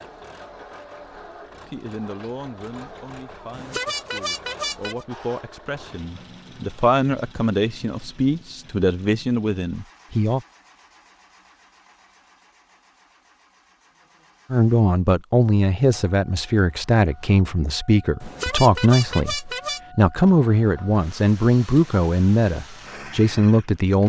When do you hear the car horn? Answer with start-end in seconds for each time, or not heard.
3.5-5.0, 18.2-19.8.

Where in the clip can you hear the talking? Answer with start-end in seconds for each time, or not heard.
1.6-10.4, 14.5-24.0.